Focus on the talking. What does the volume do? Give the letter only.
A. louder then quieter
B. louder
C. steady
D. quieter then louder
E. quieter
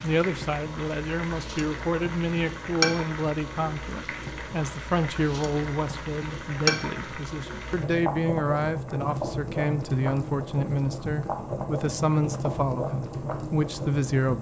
C.